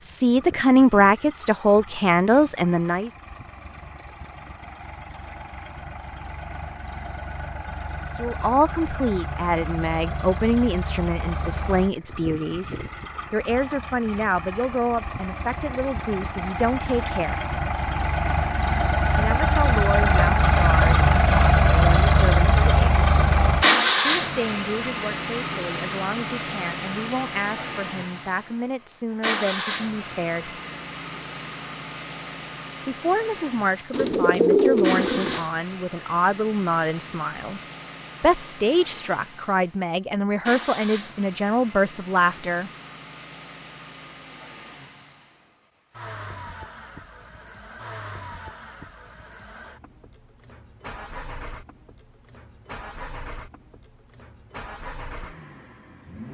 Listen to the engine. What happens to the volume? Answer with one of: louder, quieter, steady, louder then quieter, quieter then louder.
louder then quieter.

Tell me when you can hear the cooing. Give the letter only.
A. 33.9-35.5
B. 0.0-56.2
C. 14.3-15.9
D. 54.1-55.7
A.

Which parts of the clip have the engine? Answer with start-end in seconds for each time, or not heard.
0.0-56.2.